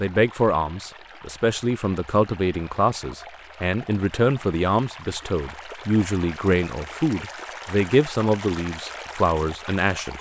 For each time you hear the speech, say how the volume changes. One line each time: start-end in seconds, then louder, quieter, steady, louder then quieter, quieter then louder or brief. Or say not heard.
0.0-10.1 steady.